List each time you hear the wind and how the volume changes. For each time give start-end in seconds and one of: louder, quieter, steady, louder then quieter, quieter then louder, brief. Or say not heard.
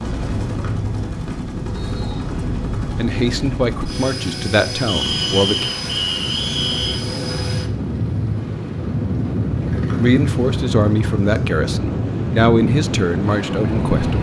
0.0-14.1 louder.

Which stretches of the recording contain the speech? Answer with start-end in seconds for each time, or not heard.
3.0-5.7, 10.0-14.1.